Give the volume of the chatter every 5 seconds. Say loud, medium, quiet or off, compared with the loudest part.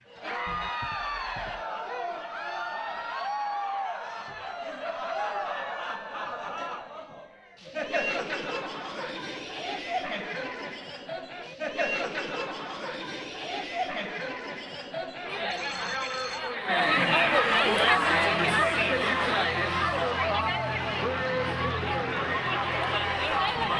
medium, medium, medium, loud, loud.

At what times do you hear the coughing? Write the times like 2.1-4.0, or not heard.
not heard.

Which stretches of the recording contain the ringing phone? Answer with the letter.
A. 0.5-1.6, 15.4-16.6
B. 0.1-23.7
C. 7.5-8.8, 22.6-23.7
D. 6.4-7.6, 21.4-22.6
A.